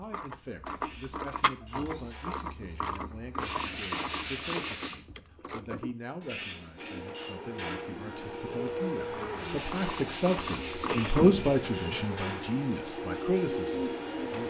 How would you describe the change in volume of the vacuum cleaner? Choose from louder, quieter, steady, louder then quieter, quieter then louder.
louder.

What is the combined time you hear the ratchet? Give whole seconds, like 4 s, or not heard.
8 s.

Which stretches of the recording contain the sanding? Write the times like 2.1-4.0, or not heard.
3.4-5.0, 9.3-10.9.